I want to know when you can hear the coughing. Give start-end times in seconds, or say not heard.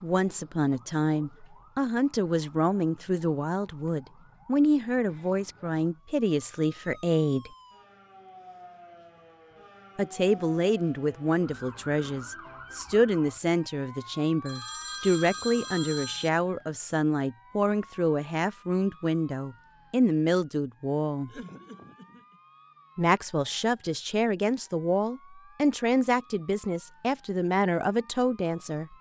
21.2-22.4.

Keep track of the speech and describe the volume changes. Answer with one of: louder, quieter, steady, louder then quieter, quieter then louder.
steady.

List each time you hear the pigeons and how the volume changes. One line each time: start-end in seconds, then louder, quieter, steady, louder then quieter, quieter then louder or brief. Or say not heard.
not heard.